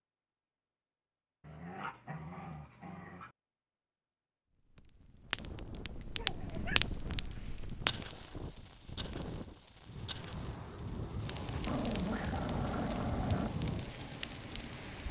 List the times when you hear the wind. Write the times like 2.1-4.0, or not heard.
5.2-15.0.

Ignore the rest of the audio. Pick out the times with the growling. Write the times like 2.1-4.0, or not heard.
1.4-3.4, 6.2-6.8, 11.5-13.5.